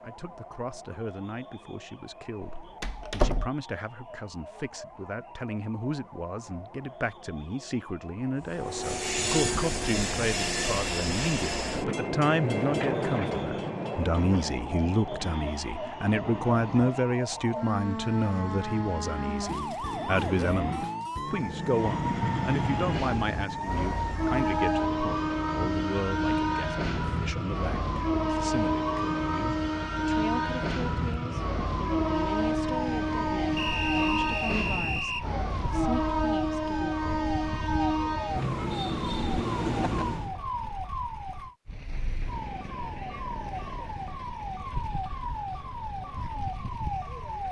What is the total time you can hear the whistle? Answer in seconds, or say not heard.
2 s.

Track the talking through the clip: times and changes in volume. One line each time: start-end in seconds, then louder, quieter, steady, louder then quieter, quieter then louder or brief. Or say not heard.
0.0-37.4 louder then quieter.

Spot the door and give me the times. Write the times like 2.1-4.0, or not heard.
2.4-3.5.